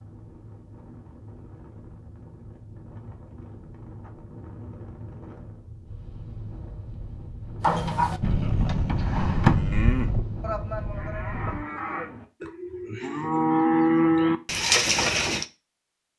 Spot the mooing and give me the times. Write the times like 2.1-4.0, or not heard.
7.6-15.4.